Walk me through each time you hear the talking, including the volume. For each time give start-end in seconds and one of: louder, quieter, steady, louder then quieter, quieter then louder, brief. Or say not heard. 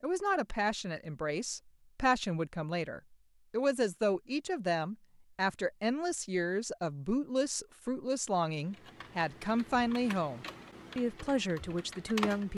0.0-12.5 steady.